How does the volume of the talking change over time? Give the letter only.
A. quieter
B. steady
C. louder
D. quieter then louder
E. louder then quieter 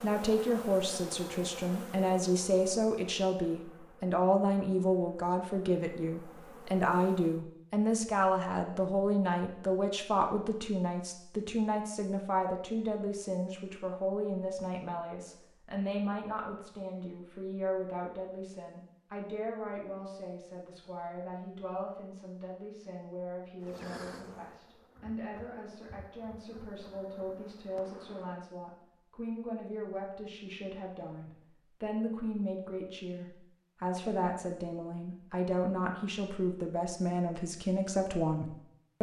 D.